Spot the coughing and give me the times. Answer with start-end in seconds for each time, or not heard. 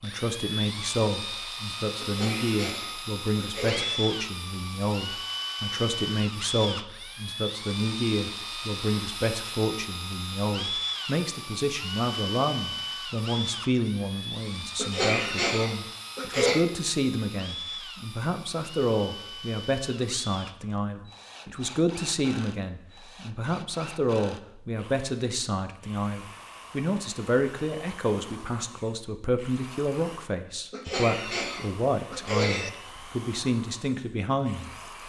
2.0-4.0, 14.8-16.6, 30.7-32.7.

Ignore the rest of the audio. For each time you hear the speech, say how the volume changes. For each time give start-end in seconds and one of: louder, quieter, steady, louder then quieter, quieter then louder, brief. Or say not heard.
0.0-34.7 steady.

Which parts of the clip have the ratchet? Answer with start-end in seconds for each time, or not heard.
not heard.